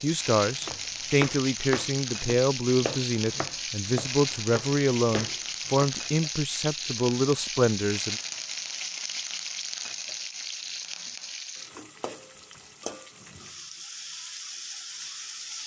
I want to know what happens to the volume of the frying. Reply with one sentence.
The volume of the frying goes down.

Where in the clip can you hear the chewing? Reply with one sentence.
You can't hear the chewing here.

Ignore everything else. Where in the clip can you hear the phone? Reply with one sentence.
You can't hear the phone here.